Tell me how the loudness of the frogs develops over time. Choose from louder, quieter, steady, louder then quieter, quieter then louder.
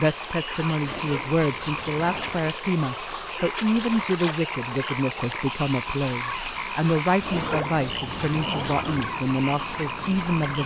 steady.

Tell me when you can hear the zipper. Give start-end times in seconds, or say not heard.
0.8-2.5, 7.2-9.1.